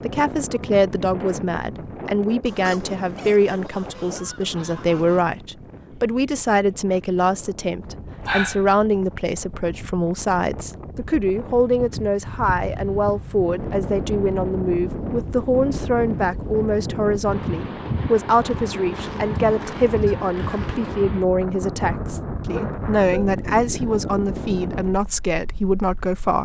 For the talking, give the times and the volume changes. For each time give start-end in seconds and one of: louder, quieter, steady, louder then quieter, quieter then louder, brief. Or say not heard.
0.0-26.3 steady.